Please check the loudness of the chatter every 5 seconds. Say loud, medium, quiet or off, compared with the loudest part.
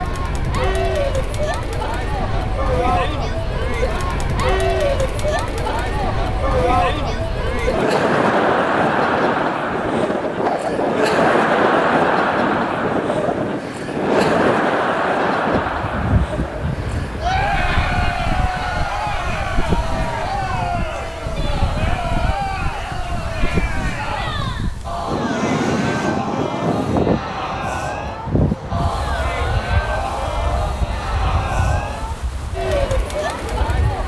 loud, loud, loud, loud, medium, medium, medium.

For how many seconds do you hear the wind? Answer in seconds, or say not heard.
34 s.